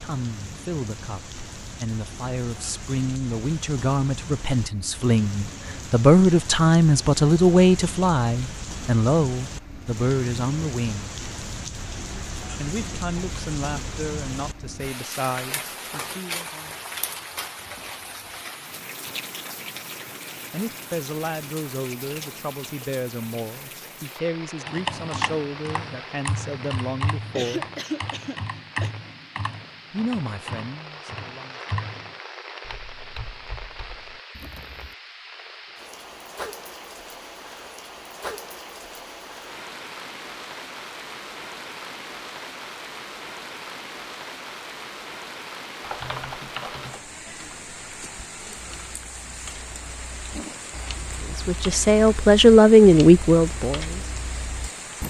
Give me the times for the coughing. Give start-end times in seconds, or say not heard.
27.4-28.9.